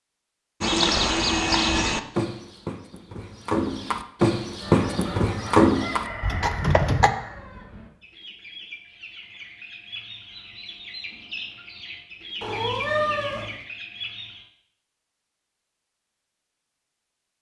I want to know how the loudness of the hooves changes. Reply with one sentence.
The volume of the hooves goes down, then up.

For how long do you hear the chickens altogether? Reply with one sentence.
You can hear the chickens for 10 seconds altogether.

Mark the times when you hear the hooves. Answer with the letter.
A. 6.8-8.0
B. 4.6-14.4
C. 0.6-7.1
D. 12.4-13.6
C.